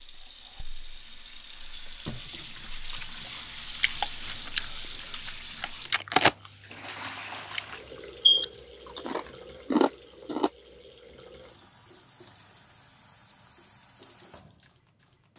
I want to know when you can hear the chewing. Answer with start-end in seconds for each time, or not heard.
3.8-4.7, 5.6-10.5.